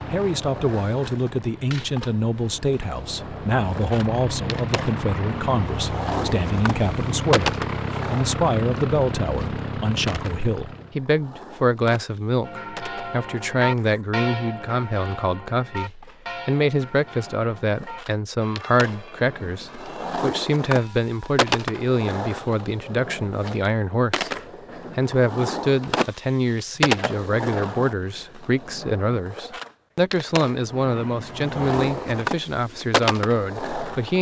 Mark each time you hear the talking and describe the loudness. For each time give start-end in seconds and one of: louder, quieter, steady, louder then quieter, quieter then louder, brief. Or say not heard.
0.1-24.3 steady
24.9-34.1 steady.